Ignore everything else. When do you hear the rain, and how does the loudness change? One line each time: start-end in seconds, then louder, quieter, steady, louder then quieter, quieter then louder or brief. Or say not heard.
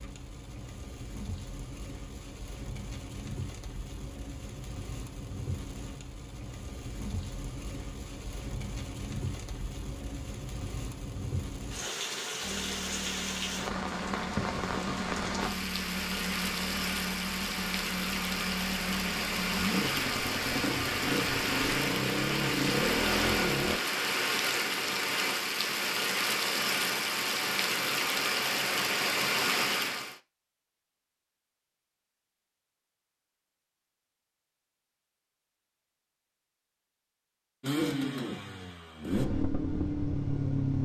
0.0-30.1 louder.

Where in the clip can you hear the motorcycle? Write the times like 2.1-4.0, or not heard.
12.4-23.8, 37.6-40.8.